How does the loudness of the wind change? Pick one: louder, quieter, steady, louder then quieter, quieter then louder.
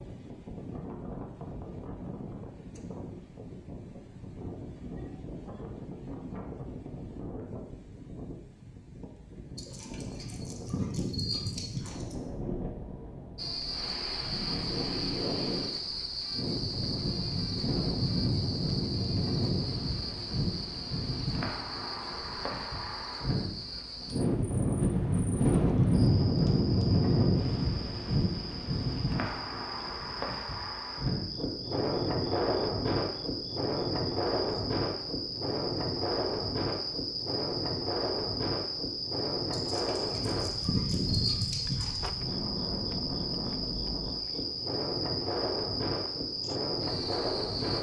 louder then quieter.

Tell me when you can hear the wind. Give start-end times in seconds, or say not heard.
0.0-47.7.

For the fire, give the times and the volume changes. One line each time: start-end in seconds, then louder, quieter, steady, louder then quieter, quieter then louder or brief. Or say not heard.
not heard.